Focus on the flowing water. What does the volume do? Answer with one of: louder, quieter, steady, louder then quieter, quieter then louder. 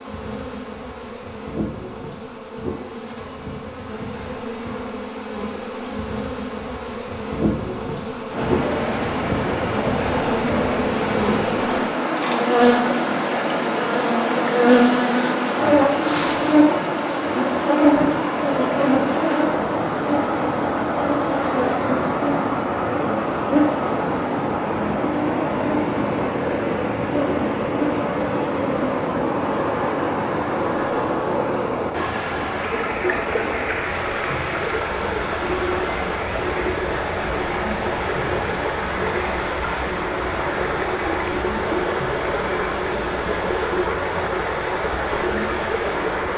steady.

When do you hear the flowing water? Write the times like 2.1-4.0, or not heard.
8.3-46.3.